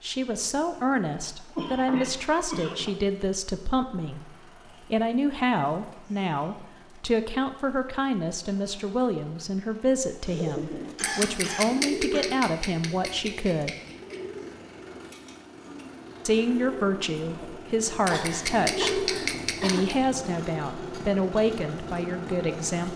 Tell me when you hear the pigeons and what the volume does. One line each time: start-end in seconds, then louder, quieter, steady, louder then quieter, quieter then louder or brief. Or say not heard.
10.2-19.9 quieter then louder.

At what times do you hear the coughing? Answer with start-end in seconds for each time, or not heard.
1.6-3.0, 10.2-12.2, 18.1-20.1.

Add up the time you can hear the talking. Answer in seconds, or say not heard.
20 s.